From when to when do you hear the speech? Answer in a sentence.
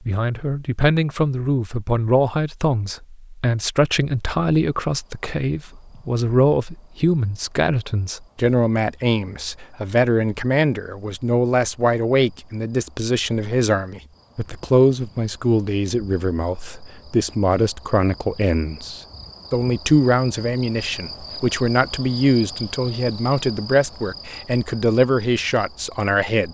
You can hear the speech from 0.1 to 26.4 s.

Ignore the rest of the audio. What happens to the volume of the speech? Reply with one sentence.
The volume of the speech stays about the same.